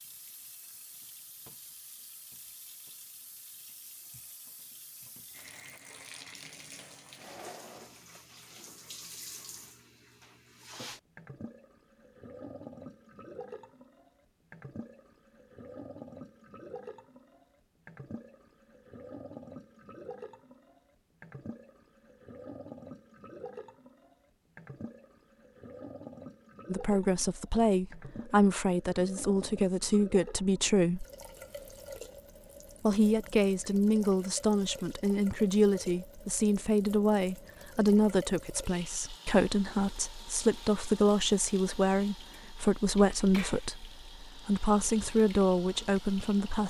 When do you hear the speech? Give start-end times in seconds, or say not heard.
26.6-31.1, 32.8-46.6.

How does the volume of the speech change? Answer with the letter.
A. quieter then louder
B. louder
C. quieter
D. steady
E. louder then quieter
D.